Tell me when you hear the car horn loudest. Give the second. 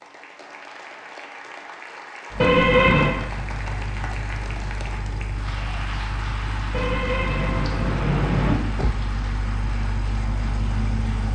3 s.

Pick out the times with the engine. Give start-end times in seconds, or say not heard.
2.3-11.3.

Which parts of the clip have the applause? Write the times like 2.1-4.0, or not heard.
0.0-11.3.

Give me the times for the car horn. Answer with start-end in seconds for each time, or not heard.
2.4-3.1, 6.7-8.6.